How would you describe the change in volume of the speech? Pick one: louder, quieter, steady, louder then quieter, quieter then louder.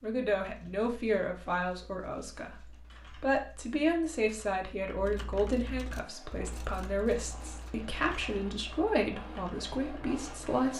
steady.